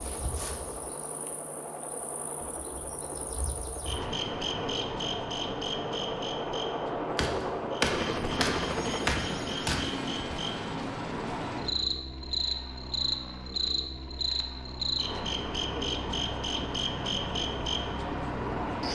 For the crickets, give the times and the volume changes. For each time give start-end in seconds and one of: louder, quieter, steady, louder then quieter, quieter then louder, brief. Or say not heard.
0.0-18.9 louder.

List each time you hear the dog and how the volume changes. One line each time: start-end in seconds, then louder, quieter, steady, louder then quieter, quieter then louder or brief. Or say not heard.
not heard.